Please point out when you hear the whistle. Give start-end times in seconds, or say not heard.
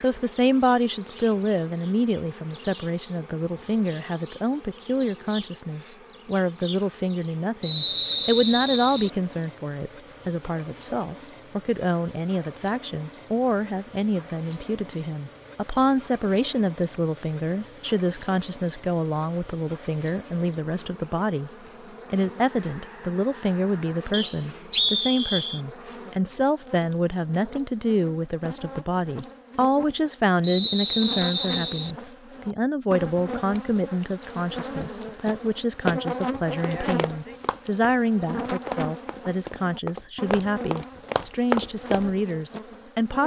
7.6-9.1, 24.1-25.6, 30.4-31.9.